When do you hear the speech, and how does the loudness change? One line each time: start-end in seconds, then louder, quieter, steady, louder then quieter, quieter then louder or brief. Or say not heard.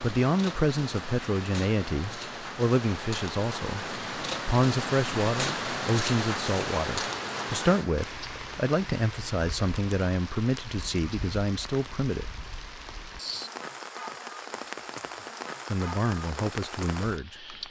0.0-12.2 steady
15.7-17.4 brief.